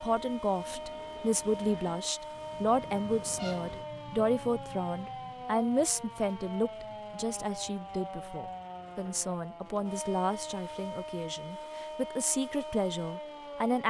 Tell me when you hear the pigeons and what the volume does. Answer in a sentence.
The pigeons can't be heard in this clip.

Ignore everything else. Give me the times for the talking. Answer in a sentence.
The talking can be heard from 0.0 to 13.8 s.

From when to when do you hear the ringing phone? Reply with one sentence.
You can't hear the ringing phone here.